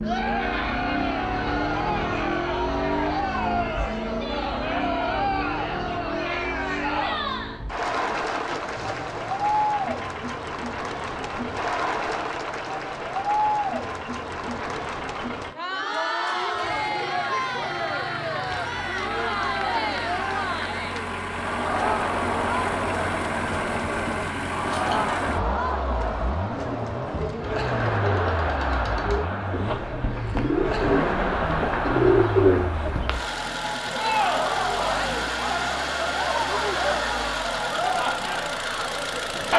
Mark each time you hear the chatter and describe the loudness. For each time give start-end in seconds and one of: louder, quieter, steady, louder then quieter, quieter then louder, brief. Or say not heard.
0.0-39.5 steady.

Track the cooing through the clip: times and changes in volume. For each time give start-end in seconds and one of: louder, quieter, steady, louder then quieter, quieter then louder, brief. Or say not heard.
26.5-33.2 louder.